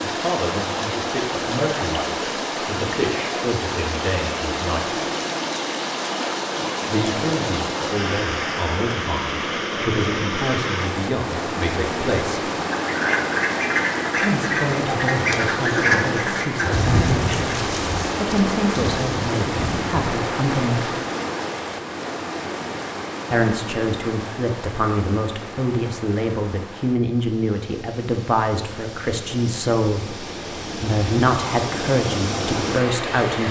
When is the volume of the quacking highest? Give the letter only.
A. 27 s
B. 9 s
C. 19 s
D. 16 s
D.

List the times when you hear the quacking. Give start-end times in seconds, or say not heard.
12.8-20.1.